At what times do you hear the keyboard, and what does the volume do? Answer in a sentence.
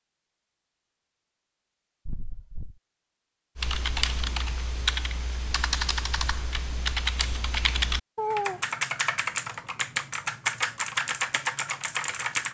You can hear the keyboard from 3.5 to 12.4 s, at a steady volume.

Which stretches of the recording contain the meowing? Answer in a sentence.
The meowing can be heard from 2.0 to 2.8 s and from 8.2 to 8.7 s.